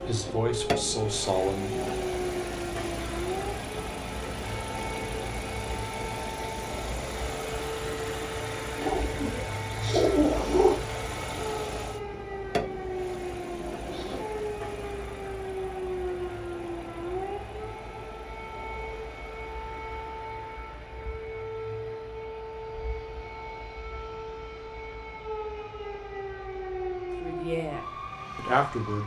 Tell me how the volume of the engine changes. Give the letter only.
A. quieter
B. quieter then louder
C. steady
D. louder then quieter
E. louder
A.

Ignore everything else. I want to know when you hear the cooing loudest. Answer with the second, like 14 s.
10 s.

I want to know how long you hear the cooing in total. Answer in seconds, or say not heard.
2 s.